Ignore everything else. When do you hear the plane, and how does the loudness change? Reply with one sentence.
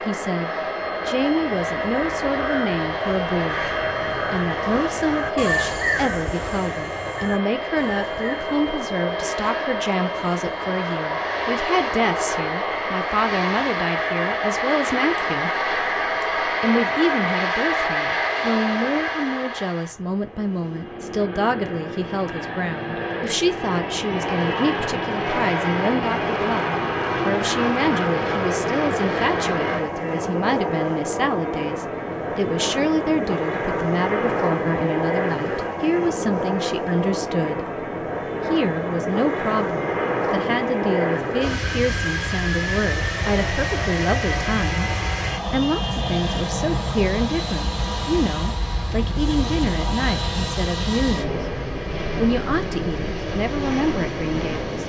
The plane can be heard from 0.0 to 54.8 s, at a steady volume.